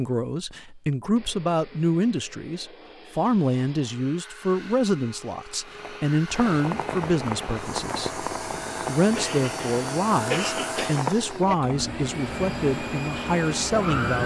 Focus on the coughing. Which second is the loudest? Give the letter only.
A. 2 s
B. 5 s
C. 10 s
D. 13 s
C.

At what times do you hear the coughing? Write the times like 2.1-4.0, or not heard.
9.2-11.1.